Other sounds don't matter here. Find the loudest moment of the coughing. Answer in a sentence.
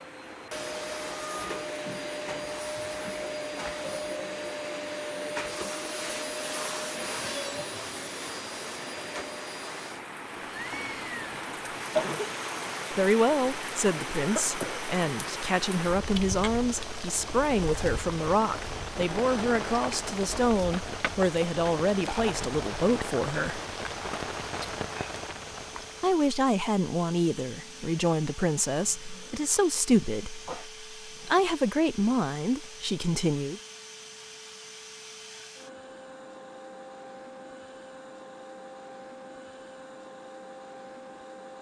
The loudest moment of the coughing is at 12 seconds.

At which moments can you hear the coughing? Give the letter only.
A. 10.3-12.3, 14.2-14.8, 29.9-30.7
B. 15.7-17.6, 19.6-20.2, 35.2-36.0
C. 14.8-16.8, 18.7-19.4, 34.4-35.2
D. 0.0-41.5
A.